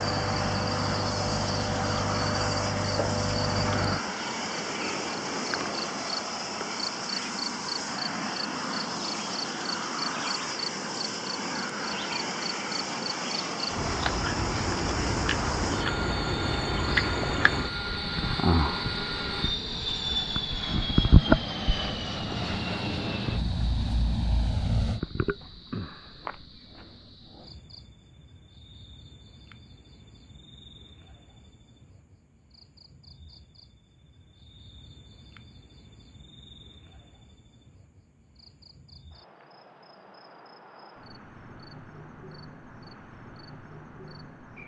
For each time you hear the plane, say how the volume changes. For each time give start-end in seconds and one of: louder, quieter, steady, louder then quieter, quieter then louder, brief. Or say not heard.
0.0-25.0 steady.